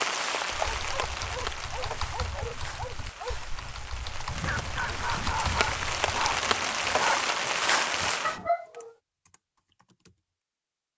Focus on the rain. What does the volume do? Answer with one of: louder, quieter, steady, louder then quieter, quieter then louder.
quieter then louder.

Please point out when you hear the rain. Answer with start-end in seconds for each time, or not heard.
0.0-8.4.